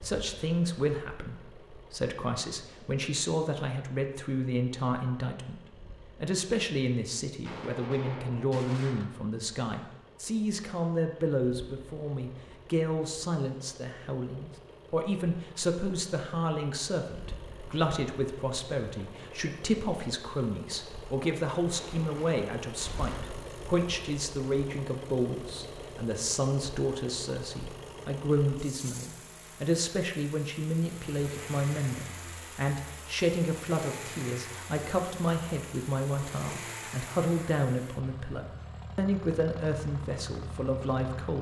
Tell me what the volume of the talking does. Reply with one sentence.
The volume of the talking stays about the same.